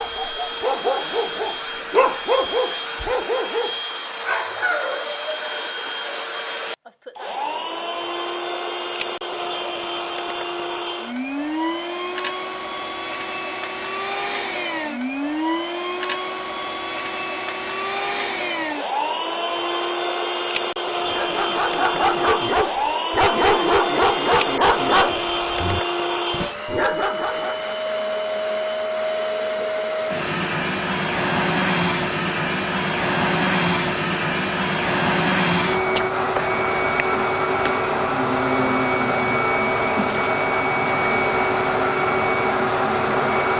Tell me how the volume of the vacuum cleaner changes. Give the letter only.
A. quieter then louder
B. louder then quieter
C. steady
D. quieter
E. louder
E.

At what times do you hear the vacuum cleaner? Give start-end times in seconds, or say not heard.
0.0-43.5.